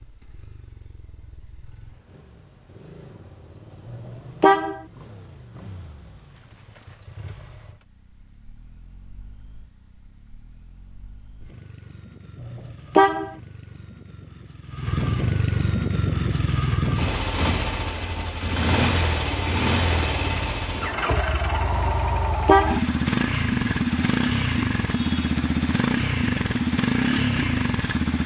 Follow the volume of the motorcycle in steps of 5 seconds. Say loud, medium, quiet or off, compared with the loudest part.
quiet, quiet, quiet, loud, loud, loud.